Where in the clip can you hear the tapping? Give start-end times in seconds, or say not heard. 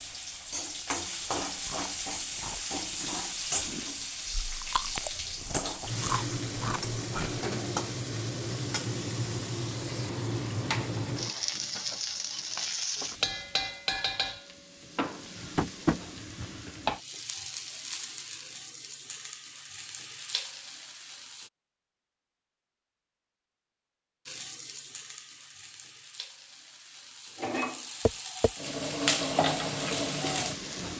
15.6-16.0, 28.1-28.5.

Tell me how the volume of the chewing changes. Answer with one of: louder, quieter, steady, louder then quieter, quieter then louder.
louder.